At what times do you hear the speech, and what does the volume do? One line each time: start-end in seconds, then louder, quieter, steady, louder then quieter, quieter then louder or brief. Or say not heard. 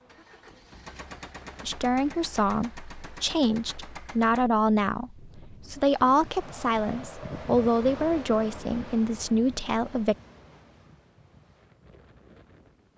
1.6-10.2 steady.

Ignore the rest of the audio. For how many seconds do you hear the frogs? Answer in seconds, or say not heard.
not heard.